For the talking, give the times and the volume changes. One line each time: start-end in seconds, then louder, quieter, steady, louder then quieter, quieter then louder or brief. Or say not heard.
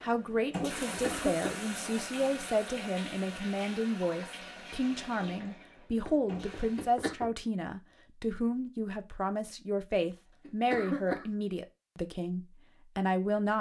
0.0-13.5 steady.